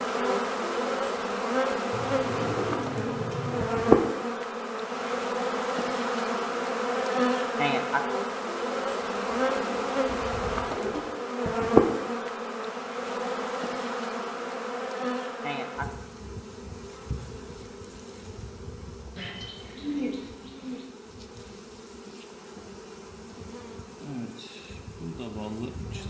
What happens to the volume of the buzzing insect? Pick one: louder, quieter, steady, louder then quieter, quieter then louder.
quieter.